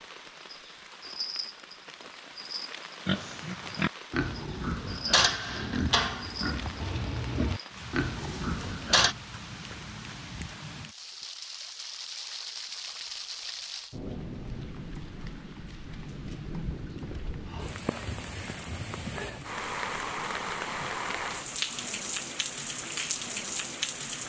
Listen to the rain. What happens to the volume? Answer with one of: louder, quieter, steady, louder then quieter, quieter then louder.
louder.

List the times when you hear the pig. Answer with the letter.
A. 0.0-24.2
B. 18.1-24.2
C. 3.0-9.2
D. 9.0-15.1
C.